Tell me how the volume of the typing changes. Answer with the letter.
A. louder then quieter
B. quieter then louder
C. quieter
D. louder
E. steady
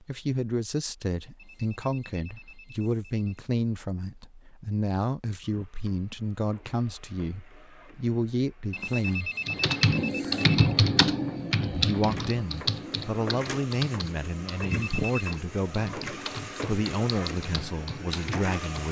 C.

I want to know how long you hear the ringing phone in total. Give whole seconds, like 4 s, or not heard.
5 s.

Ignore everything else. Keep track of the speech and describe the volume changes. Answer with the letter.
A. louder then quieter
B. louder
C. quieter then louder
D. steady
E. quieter
D.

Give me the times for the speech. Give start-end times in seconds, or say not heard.
0.0-9.3, 11.8-18.8.